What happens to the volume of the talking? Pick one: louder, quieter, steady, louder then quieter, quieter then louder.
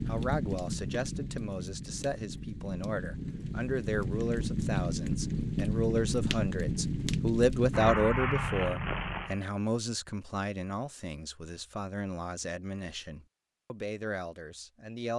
louder then quieter.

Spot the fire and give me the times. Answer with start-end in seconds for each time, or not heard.
0.0-9.4.